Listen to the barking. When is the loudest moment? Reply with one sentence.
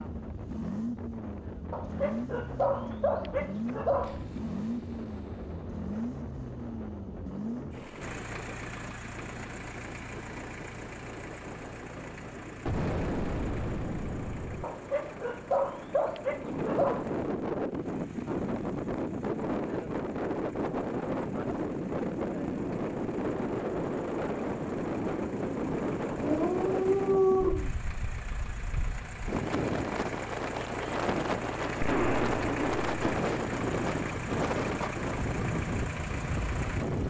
The loudest moment of the barking is at 27 seconds.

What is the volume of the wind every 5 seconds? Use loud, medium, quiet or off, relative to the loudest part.
quiet, quiet, quiet, loud, loud, loud, loud, loud.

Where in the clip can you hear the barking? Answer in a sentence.
The barking can be heard from 1.7 to 4.2 s, from 14.6 to 17.1 s and from 26.1 to 27.7 s.